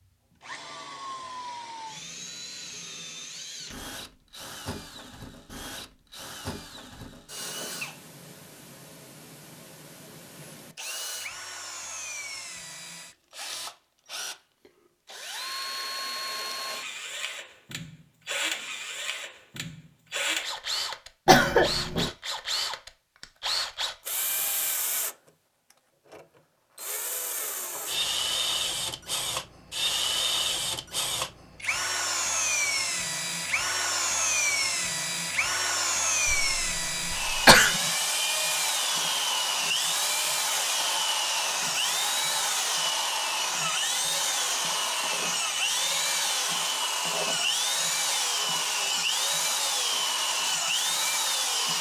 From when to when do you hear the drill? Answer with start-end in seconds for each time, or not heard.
0.0-25.1, 26.1-51.7.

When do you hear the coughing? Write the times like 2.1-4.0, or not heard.
21.2-22.1, 36.2-37.8.